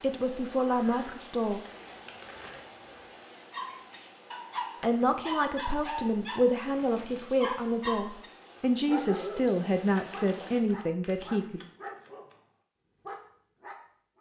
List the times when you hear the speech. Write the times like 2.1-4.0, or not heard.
0.0-1.6, 4.8-11.6.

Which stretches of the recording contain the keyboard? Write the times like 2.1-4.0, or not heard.
not heard.